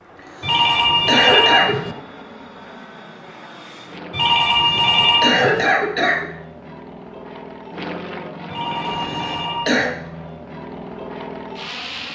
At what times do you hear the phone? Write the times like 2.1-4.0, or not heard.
0.4-1.9, 4.1-5.7, 8.4-9.9.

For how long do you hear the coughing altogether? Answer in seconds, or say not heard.
4 s.